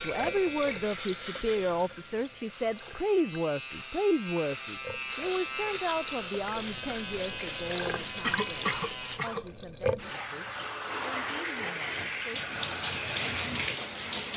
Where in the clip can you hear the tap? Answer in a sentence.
You can hear the tap from 0.0 to 14.3 s.